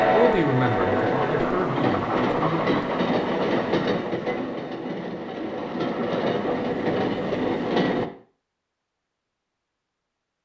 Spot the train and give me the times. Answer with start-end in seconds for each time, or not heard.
0.0-8.1.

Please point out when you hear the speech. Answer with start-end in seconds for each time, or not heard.
0.0-2.9.